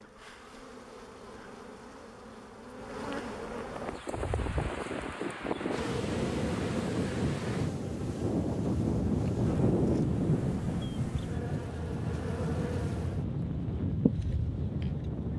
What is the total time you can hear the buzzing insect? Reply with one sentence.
You can hear the buzzing insect for 15 seconds altogether.